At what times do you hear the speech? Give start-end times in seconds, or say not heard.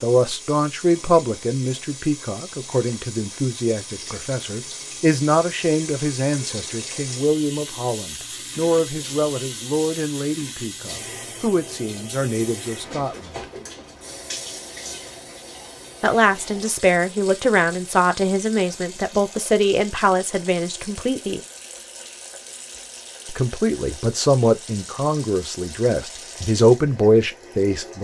0.0-13.4, 16.0-21.4, 23.2-28.0.